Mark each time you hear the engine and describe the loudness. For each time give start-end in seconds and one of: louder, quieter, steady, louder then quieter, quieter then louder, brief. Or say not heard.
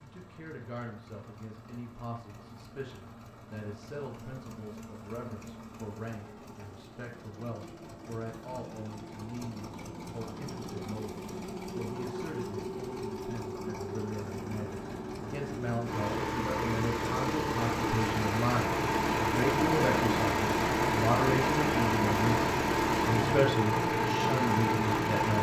0.0-25.3 louder.